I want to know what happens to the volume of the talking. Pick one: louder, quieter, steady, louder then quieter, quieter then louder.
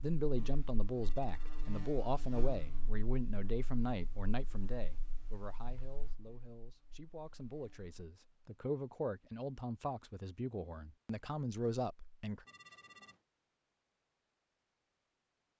quieter then louder.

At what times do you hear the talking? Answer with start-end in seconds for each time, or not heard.
0.0-12.4.